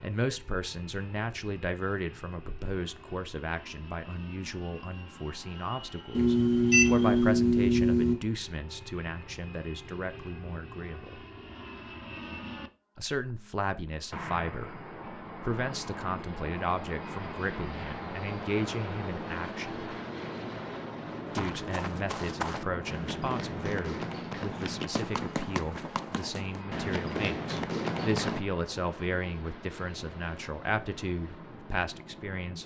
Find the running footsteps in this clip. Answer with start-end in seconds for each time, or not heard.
21.3-28.4.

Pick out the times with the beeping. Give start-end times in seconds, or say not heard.
6.1-8.2.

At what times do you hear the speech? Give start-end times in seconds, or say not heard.
0.0-11.2, 12.9-19.9, 21.4-32.6.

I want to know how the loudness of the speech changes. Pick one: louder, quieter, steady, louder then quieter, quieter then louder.
steady.